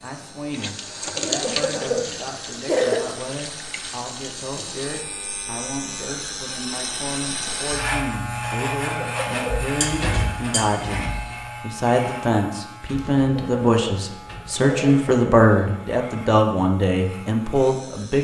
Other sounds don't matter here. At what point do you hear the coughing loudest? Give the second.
3 s.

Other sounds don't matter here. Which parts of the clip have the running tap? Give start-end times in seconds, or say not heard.
0.0-5.0.